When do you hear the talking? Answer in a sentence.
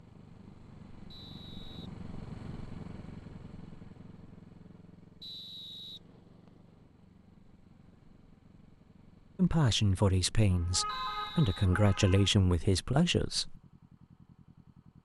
You can hear the talking from 9.3 to 13.6 s.